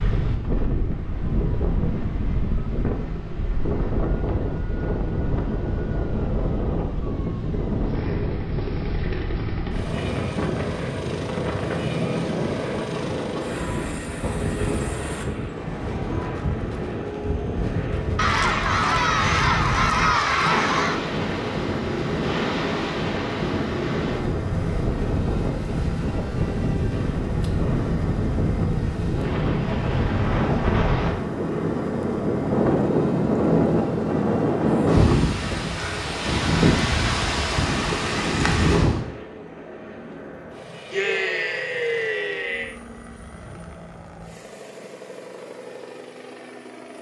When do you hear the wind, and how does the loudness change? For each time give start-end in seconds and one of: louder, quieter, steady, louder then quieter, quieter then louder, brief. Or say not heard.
0.0-39.0 louder.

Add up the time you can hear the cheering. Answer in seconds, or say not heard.
5 s.